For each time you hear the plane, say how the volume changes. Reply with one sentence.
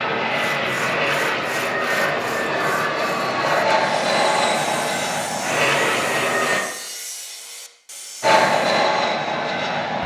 The plane can be heard from 0.0 to 6.6 s, at a steady volume; and briefly from 8.2 to 10.0 s.